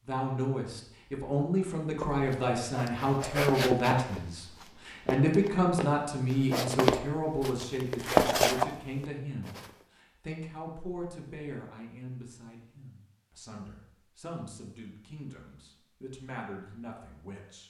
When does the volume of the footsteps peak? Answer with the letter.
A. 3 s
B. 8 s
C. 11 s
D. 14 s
B.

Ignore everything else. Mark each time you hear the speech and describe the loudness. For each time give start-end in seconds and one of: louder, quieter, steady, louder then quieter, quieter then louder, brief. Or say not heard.
0.0-17.6 quieter.